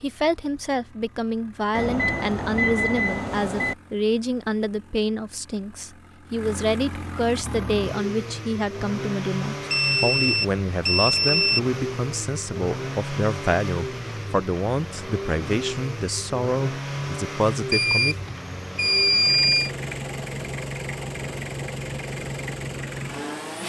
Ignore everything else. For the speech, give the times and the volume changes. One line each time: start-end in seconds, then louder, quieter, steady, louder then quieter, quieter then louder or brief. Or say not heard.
0.0-18.1 steady.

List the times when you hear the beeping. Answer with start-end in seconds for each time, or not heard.
1.7-3.8, 9.7-11.6, 17.7-19.7.